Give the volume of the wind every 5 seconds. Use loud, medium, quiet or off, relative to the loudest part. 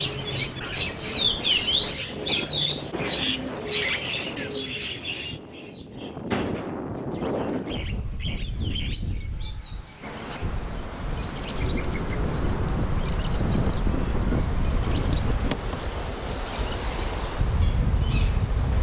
medium, loud, loud, loud.